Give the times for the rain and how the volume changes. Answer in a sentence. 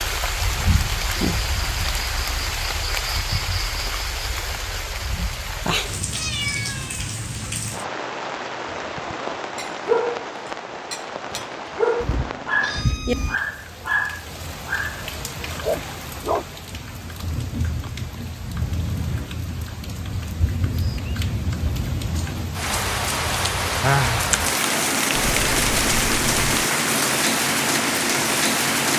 The rain can be heard from 0.0 to 28.9 s, getting quieter then louder.